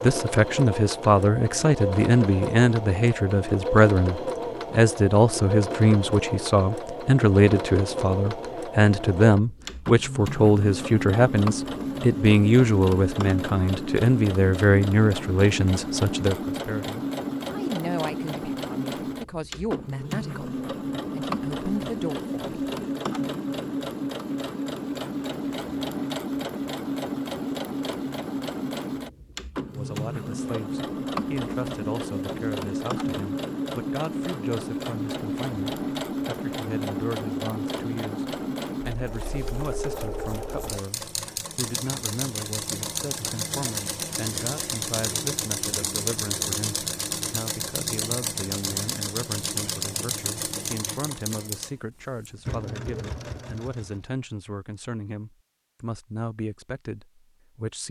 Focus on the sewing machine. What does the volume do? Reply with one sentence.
The loudness of the sewing machine stays about the same.